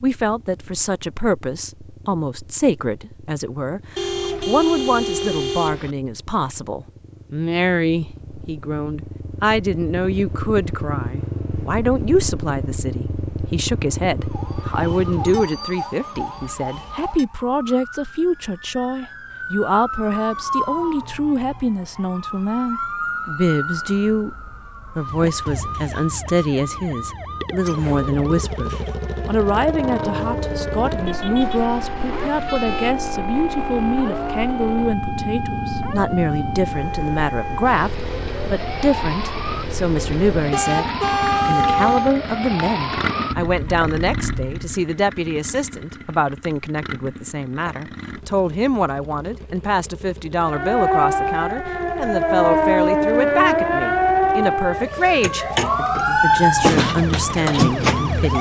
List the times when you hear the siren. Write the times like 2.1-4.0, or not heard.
14.2-44.8, 50.4-58.3.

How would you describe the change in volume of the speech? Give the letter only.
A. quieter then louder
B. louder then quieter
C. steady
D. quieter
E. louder
C.